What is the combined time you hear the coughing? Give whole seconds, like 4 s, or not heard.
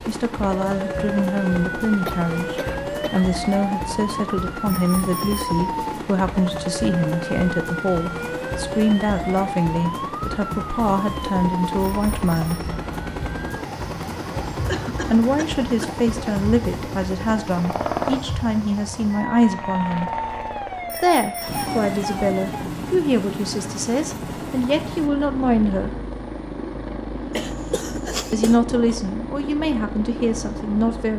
4 s.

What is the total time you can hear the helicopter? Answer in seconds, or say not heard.
31 s.